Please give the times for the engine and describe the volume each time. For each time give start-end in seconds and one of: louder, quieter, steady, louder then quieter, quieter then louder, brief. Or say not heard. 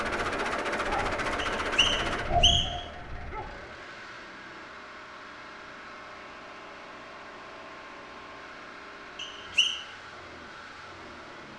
0.0-11.5 quieter.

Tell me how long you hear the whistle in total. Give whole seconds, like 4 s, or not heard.
2 s.